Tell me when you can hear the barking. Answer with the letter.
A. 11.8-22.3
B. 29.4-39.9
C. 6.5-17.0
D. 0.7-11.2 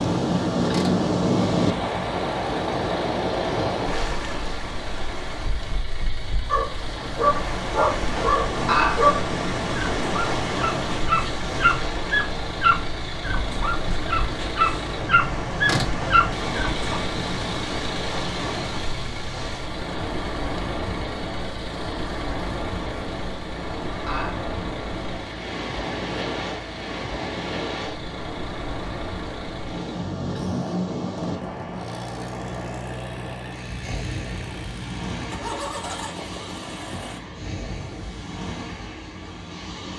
C.